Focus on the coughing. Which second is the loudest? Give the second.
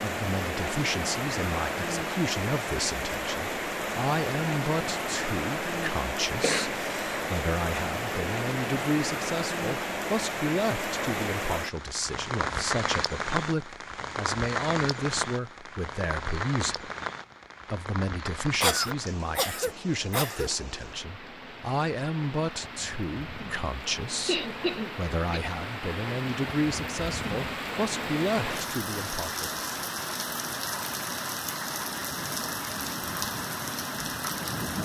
19 s.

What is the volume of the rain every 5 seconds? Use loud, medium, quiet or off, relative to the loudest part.
loud, loud, loud, medium, medium, loud, loud.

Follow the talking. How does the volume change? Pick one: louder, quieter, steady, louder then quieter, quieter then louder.
steady.